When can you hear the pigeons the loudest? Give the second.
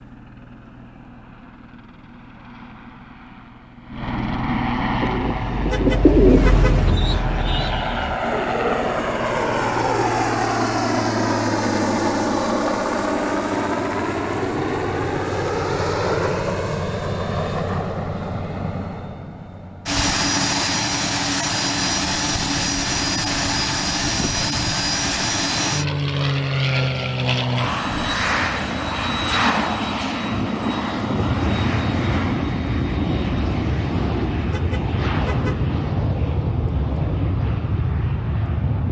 6 s.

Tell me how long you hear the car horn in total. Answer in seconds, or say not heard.
2 s.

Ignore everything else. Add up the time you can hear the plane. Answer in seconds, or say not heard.
39 s.